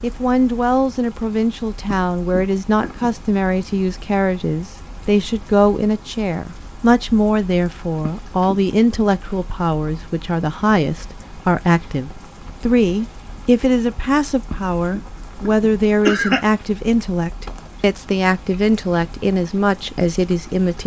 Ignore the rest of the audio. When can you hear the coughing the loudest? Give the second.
16 s.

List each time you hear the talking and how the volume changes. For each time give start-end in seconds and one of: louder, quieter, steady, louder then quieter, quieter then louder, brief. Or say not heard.
0.0-20.8 steady.